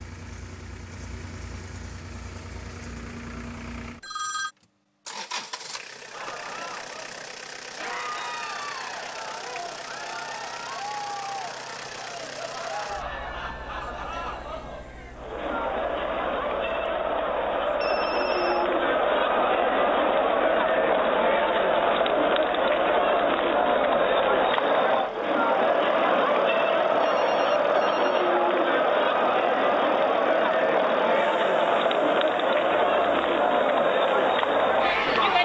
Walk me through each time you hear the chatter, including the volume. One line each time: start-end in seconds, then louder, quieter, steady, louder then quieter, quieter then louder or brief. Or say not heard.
6.0-35.3 louder.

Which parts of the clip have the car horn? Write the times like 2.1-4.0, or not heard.
not heard.